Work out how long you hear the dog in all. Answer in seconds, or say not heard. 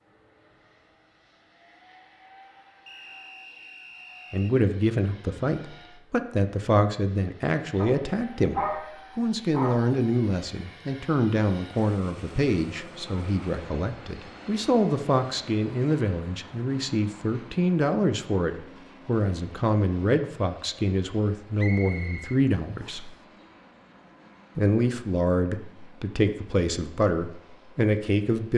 2 s.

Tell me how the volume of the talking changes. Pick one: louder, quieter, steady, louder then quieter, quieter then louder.
steady.